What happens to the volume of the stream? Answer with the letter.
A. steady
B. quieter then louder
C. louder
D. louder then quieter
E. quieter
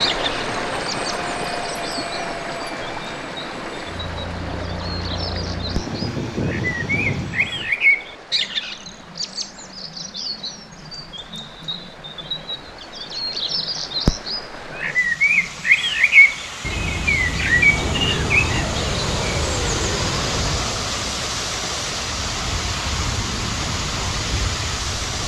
B.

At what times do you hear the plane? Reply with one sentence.
The plane can be heard from 0.0 to 7.8 s and from 17.5 to 25.2 s.